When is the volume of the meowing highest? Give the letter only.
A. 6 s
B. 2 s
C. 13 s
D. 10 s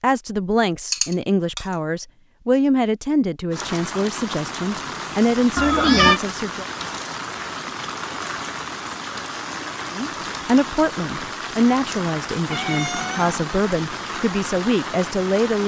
A.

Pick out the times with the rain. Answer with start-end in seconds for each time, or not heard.
3.5-15.6.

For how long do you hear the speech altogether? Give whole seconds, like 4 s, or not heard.
12 s.